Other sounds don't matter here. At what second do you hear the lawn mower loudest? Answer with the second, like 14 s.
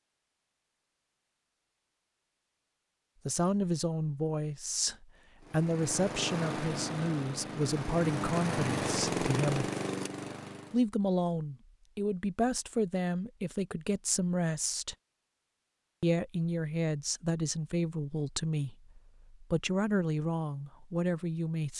9 s.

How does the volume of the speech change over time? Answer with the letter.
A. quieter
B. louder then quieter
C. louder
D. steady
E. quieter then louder
D.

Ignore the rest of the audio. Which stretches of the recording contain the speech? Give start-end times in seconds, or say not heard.
3.2-9.7, 10.7-14.9, 16.0-21.7.